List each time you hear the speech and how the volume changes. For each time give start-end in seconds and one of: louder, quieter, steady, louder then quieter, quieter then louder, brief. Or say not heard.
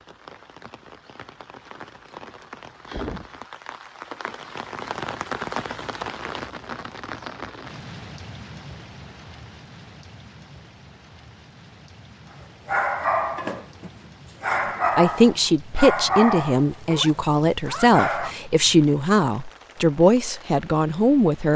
14.9-21.5 steady.